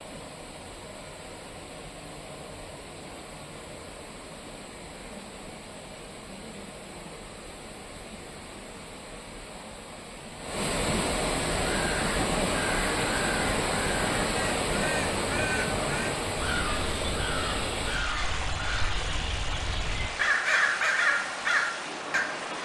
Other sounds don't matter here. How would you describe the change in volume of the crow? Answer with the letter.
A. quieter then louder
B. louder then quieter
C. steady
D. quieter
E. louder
E.